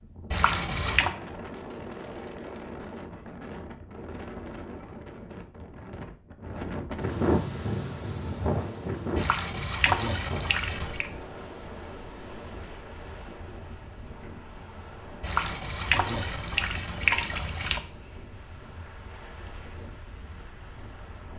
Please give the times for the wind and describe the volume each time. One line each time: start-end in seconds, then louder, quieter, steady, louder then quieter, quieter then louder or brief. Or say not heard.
0.0-21.3 louder then quieter.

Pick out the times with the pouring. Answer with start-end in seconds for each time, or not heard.
0.3-1.1, 9.2-11.1, 15.2-17.8.